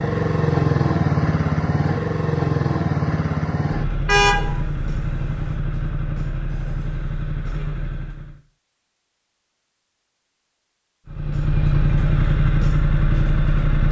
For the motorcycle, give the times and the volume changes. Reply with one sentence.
The motorcycle can be heard from 0.0 to 8.4 s, getting quieter; and briefly from 11.1 to 13.8 s.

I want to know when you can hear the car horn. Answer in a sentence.
You can hear the car horn from 4.0 to 5.5 s.